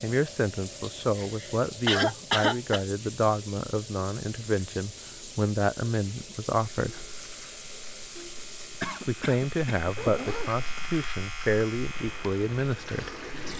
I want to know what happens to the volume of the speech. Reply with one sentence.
The volume of the speech stays about the same.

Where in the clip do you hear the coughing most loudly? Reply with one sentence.
The loudest moment of the coughing is at 2 seconds.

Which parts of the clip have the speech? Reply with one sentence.
The speech can be heard from 0.0 to 7.1 s and from 9.1 to 13.5 s.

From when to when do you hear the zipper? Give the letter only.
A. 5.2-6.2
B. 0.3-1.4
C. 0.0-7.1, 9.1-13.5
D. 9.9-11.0
D.